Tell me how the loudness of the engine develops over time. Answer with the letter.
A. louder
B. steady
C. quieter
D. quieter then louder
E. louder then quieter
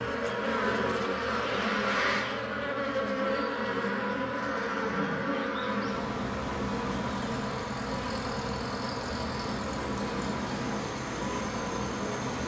A.